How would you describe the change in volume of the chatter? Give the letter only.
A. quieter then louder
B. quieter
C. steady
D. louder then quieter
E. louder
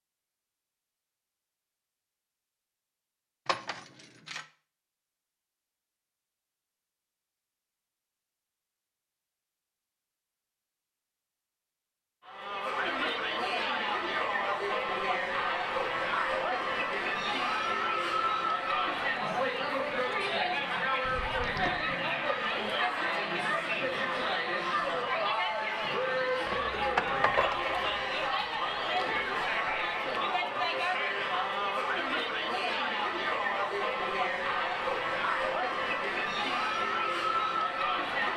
C.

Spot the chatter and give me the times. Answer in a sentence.
The chatter can be heard from 12.2 to 38.3 s.